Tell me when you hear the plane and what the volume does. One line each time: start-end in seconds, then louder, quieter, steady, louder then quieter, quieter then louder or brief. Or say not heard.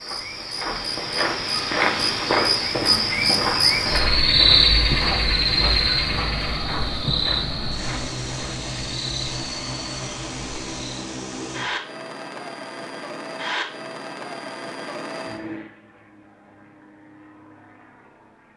3.0-18.5 quieter.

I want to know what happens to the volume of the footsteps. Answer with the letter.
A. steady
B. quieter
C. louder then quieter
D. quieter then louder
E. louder
B.